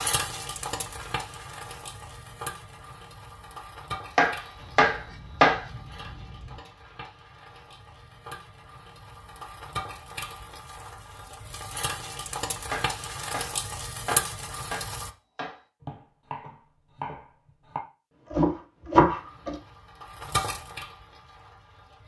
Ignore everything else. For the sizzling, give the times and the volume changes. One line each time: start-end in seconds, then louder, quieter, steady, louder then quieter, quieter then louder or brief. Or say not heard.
0.0-15.1 quieter then louder
19.1-22.0 brief.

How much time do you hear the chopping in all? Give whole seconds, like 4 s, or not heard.
8 s.